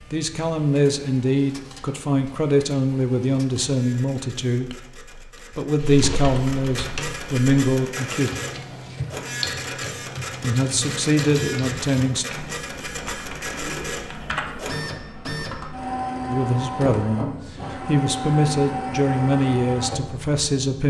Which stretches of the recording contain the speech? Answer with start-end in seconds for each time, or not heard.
0.1-8.3, 10.4-12.2, 16.2-20.8.